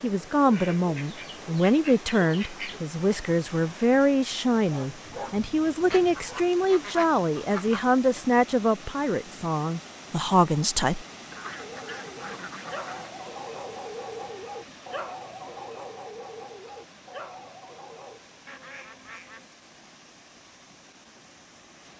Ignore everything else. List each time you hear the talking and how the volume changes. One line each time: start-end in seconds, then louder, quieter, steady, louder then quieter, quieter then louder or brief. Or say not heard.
0.0-11.1 steady.